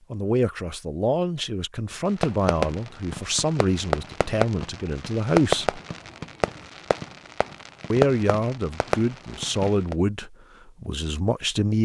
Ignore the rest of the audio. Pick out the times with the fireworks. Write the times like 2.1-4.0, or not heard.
2.2-9.9.